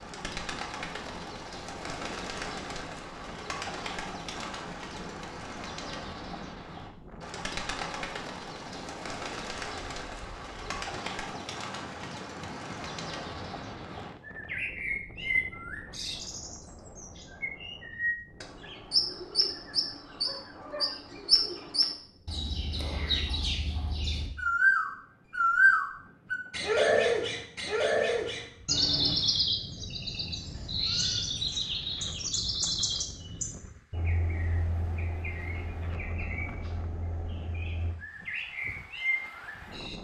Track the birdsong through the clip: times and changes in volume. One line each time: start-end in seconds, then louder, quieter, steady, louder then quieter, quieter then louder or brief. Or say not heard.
0.0-39.9 louder then quieter.